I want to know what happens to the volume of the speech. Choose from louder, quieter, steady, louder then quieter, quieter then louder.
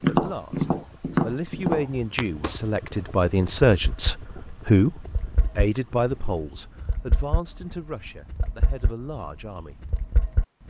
louder then quieter.